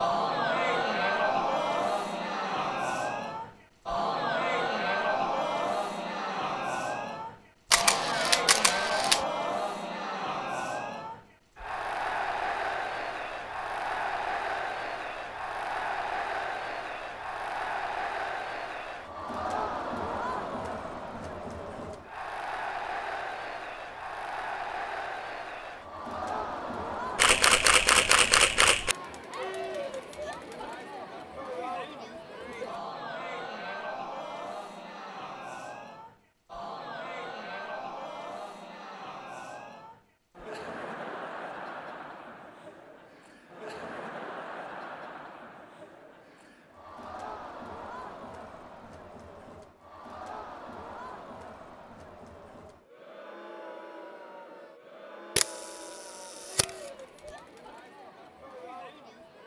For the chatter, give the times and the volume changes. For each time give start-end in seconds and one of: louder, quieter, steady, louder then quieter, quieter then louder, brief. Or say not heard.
0.0-59.4 quieter.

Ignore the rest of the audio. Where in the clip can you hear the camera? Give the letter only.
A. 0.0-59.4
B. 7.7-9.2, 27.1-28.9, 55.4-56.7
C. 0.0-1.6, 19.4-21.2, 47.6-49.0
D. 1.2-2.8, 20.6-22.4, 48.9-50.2
B.